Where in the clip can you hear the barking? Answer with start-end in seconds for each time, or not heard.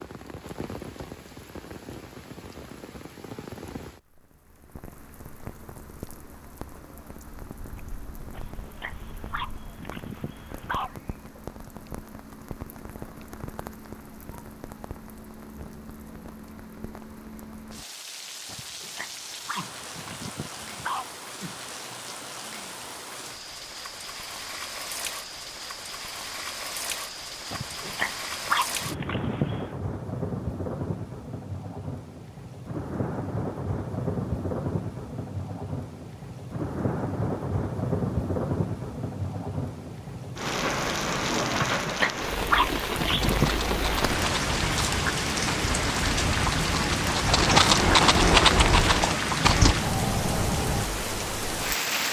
8.3-10.9, 18.4-21.2, 27.5-29.7, 41.5-43.7.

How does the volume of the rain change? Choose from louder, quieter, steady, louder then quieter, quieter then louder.
louder.